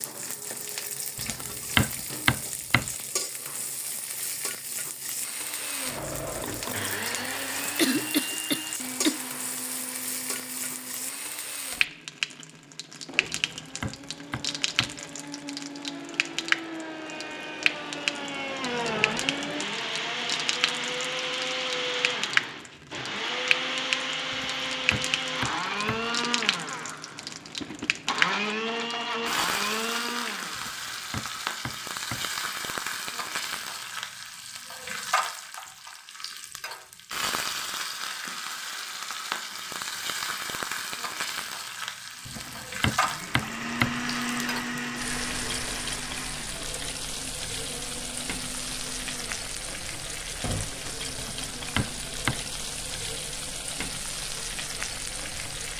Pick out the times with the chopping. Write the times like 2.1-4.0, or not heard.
1.1-3.0, 13.2-15.0, 24.3-26.1, 30.6-32.3, 42.2-44.0, 51.1-52.4.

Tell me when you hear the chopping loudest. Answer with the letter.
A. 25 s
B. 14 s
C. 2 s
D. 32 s
C.